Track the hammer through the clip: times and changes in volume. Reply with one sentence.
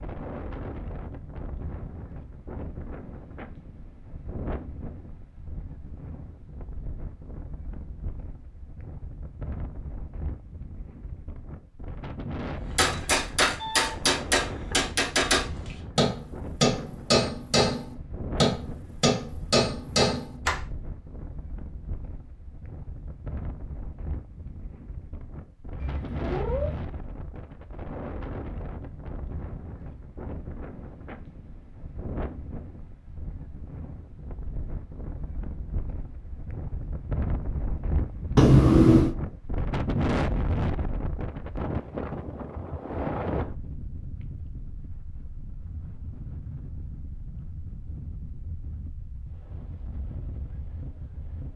You can hear the hammer from 12.8 to 20.6 s, at a steady volume.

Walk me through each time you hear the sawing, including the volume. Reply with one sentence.
You can't hear the sawing here.